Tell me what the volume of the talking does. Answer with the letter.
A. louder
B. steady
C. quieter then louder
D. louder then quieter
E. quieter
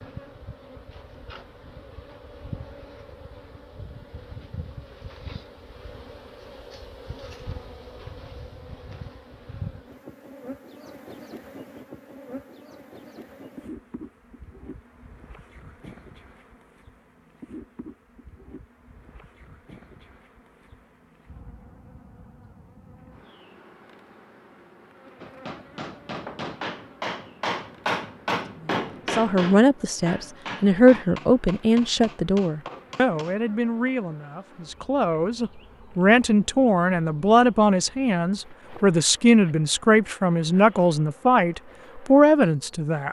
C.